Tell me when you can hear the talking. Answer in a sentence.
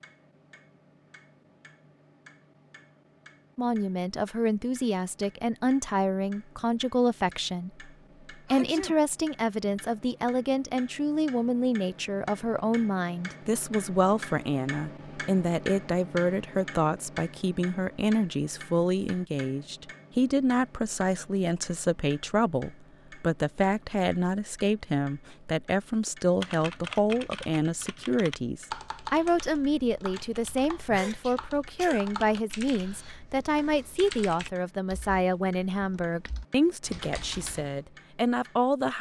The talking can be heard from 3.5 to 38.9 s.